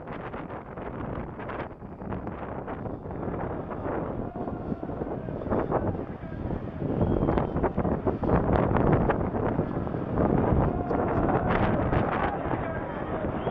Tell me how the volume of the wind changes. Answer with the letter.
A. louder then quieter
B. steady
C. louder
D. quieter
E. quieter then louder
C.